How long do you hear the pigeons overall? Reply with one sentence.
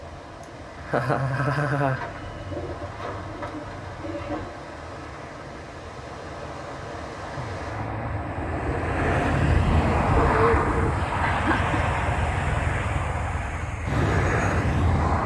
You can hear the pigeons for 5 seconds altogether.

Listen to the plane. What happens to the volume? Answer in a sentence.
The loudness of the plane goes up.